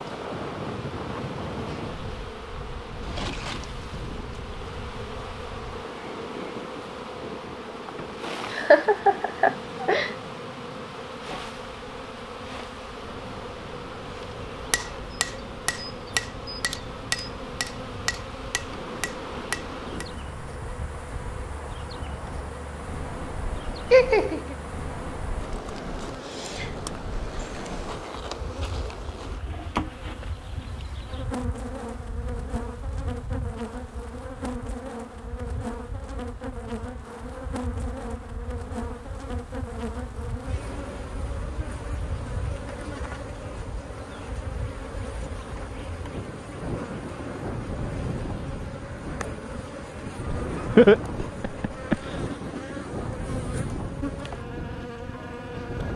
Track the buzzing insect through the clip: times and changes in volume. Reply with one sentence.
The buzzing insect can be heard from 0.0 to 55.9 s, at a steady volume.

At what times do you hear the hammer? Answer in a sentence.
The hammer can be heard from 14.7 to 20.2 s.